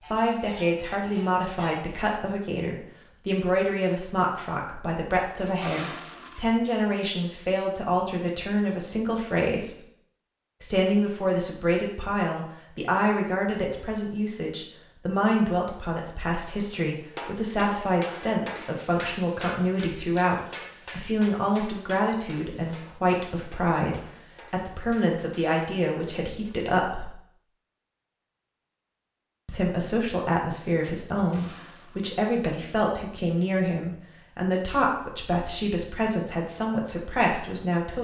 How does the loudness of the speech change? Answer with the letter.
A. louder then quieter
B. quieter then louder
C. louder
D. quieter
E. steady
E.